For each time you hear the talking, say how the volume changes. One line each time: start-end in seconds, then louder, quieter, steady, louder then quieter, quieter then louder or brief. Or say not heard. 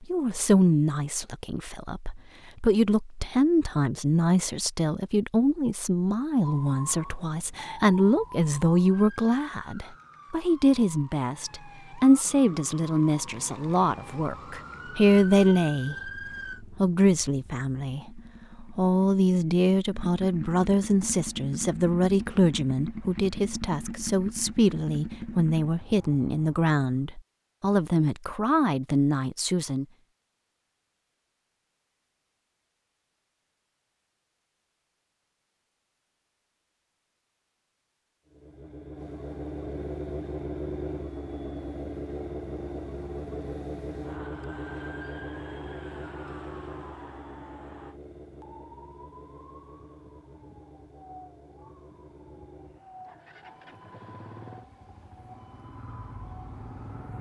0.0-29.9 steady.